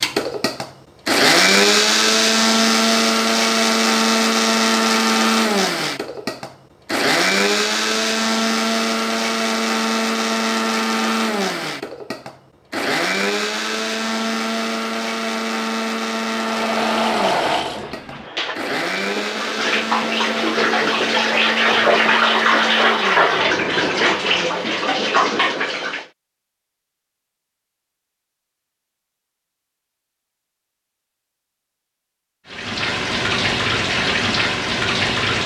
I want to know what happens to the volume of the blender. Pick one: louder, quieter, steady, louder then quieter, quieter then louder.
quieter.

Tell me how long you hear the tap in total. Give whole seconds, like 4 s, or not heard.
13 s.